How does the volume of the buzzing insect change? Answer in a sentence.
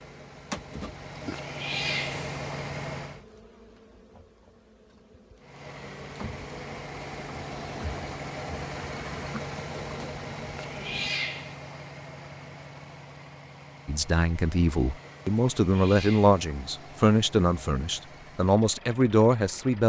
The volume of the buzzing insect goes down, then up.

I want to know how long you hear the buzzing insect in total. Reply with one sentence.
The buzzing insect can be heard for 11 seconds in total.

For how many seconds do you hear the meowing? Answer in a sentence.
You can hear the meowing for 3 seconds altogether.